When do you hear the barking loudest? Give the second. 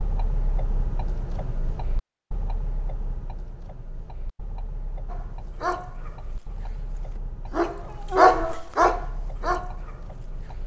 8 s.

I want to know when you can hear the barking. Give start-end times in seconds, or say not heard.
5.1-10.6.